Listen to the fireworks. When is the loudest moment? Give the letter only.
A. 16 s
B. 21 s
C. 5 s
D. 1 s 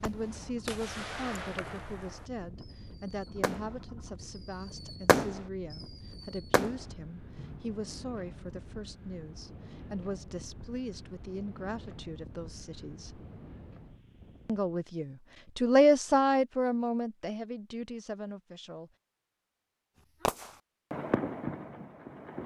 C.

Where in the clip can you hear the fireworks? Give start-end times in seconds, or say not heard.
0.0-3.8, 4.8-5.4, 6.3-7.6, 20.2-22.4.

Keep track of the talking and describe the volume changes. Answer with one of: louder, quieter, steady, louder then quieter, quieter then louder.
louder.